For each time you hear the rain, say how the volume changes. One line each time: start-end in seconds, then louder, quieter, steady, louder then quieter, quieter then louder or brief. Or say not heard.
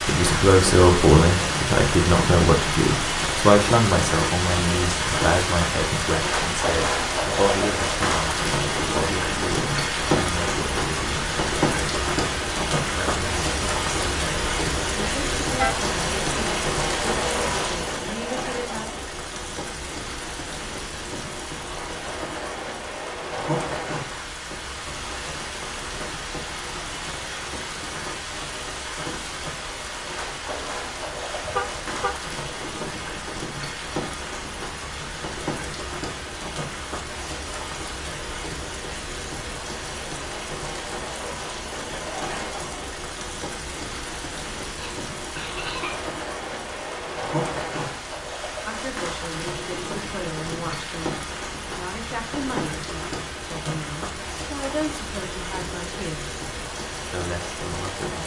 0.0-58.2 quieter.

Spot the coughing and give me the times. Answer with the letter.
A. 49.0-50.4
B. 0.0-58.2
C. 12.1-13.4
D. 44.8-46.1
D.